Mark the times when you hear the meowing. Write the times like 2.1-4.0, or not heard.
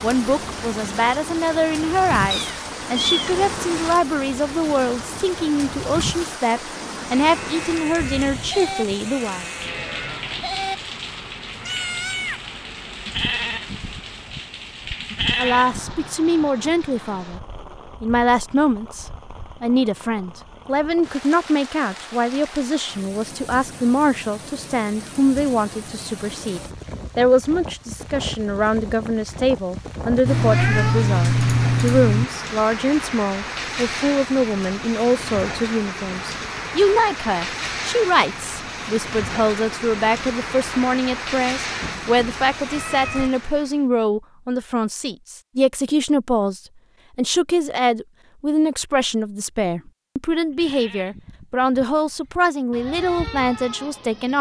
2.3-3.5, 30.2-32.2, 41.8-43.3.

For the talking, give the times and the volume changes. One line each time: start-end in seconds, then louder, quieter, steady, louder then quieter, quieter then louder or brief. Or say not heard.
0.0-9.4 steady
15.3-17.4 brief
18.0-54.3 steady.